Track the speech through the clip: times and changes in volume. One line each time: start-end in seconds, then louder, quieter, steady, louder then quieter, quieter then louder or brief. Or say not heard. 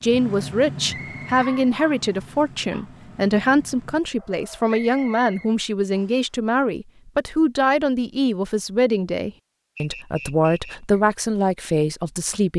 0.0-12.5 steady.